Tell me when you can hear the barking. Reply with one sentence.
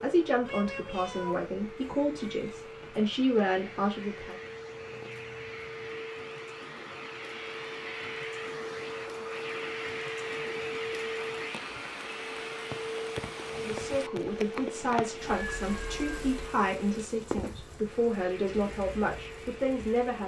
You can't hear the barking here.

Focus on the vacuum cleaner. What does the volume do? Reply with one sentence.
The loudness of the vacuum cleaner goes up, then down.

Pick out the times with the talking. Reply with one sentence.
The talking can be heard from 0.0 to 4.3 s and from 13.6 to 20.2 s.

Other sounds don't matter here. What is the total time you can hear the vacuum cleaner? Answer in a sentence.
You can hear the vacuum cleaner for 20 seconds altogether.